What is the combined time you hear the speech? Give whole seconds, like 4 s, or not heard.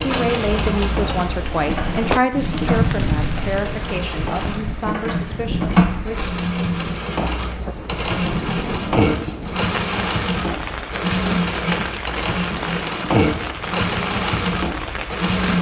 6 s.